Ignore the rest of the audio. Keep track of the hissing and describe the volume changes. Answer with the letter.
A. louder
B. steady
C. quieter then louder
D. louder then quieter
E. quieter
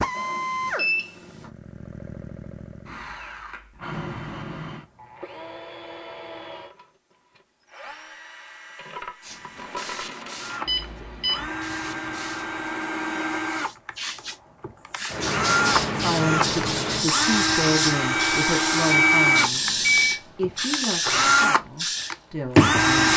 A.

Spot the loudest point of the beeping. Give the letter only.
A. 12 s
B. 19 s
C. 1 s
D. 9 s
B.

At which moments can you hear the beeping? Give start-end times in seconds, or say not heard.
0.1-1.5, 10.7-11.4, 18.1-20.2.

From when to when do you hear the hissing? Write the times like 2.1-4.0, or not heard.
9.2-23.1.